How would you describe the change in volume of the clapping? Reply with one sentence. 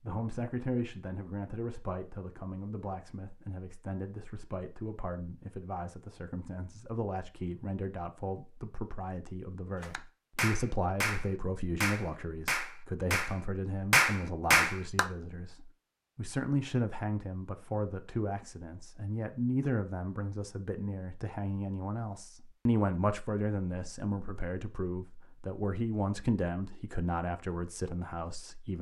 The volume of the clapping goes up.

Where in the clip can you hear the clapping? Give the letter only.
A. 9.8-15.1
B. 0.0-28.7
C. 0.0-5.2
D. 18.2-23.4
A.